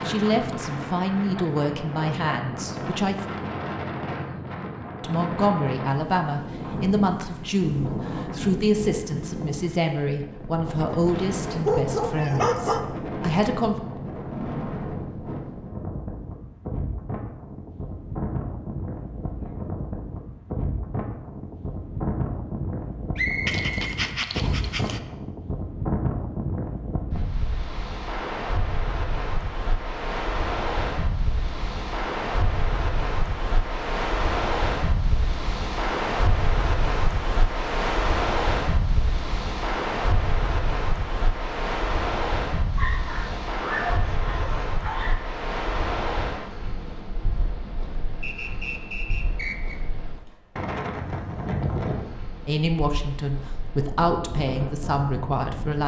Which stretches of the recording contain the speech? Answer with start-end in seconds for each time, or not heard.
0.0-3.2, 5.0-13.8, 52.5-55.8.